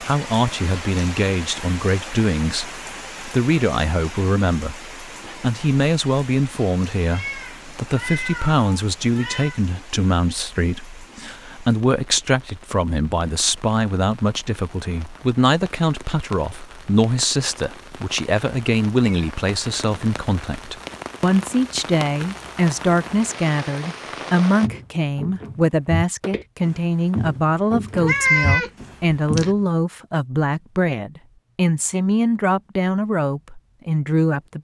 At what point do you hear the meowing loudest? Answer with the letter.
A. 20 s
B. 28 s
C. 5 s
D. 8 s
B.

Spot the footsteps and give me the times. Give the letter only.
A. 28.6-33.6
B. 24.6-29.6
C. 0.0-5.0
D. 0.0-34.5
B.